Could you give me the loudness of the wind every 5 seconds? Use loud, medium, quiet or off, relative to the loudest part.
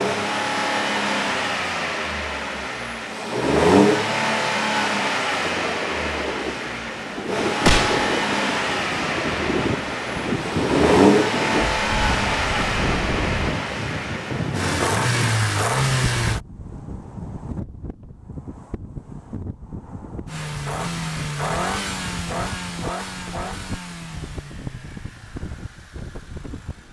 off, loud, loud, medium, medium, quiet.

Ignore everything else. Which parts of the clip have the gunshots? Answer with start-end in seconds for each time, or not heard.
7.7-8.1.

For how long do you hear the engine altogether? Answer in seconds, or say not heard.
23 s.